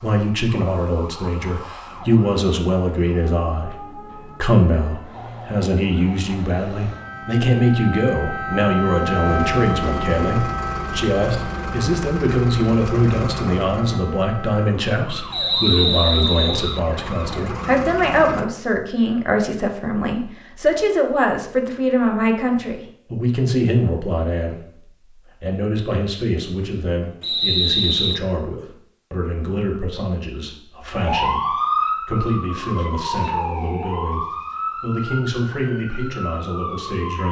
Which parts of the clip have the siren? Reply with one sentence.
You can hear the siren from 0.0 to 17.8 s and from 30.9 to 37.2 s.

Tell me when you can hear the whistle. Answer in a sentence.
The whistle can be heard from 15.3 to 16.8 s and from 27.2 to 28.2 s.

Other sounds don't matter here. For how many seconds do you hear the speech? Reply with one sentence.
The speech can be heard for 37 seconds in total.